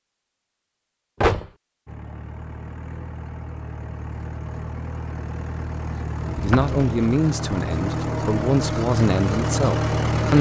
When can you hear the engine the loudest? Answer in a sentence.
The volume of the engine peaks at 10 seconds.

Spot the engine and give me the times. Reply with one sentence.
The engine can be heard from 1.9 to 10.3 s.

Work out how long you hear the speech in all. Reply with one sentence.
The speech can be heard for 4 seconds in total.